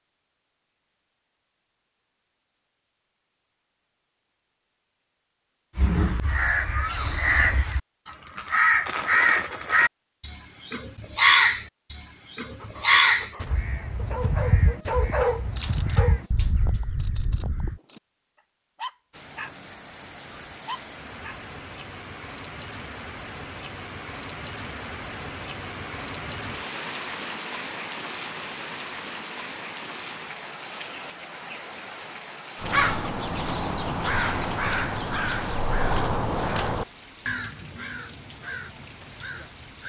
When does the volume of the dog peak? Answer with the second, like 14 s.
15 s.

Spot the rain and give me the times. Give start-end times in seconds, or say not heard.
19.1-39.8.